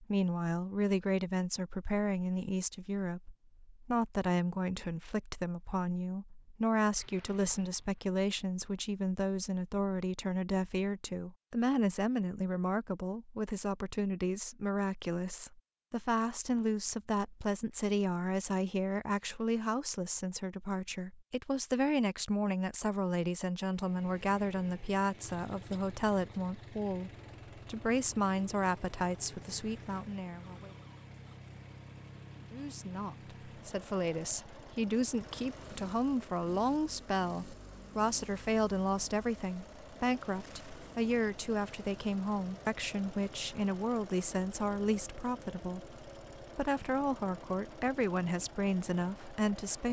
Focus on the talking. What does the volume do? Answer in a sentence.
The loudness of the talking stays about the same.